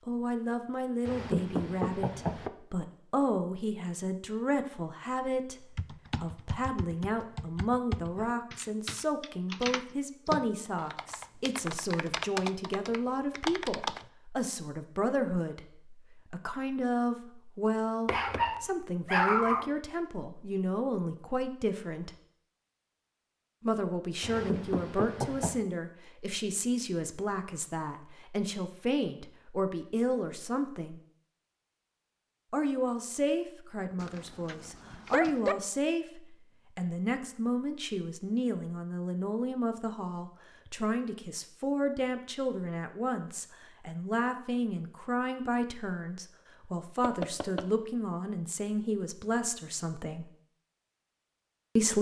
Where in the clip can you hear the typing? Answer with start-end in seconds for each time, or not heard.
5.8-14.1.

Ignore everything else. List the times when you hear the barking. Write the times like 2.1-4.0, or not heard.
18.1-19.7, 34.0-35.5.